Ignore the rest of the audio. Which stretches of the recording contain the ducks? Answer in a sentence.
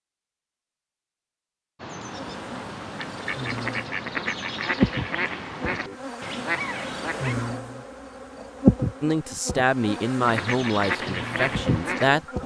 The ducks can be heard from 1.8 to 7.3 s and from 10.2 to 12.4 s.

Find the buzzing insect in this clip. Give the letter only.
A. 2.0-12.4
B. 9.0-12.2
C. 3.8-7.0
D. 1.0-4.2
A.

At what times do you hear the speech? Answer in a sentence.
The speech can be heard from 9.0 to 12.2 s.